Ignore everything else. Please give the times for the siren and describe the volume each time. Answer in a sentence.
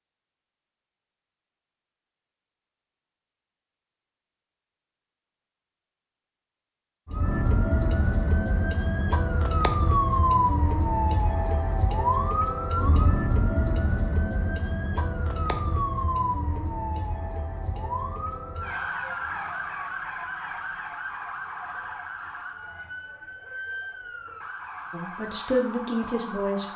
You can hear the siren from 7.0 to 26.7 s, getting quieter.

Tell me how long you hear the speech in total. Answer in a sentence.
You can hear the speech for 2 seconds altogether.